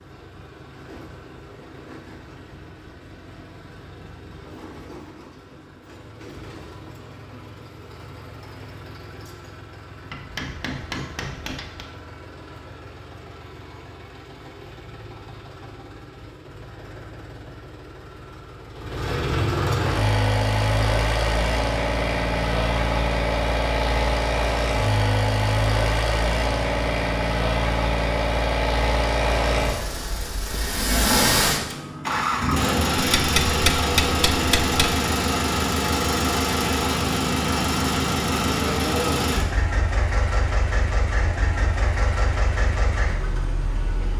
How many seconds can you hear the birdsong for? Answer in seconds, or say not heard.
not heard.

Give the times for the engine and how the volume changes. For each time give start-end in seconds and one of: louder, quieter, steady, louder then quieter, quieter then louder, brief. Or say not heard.
0.0-44.1 louder.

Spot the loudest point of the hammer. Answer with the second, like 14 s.
34 s.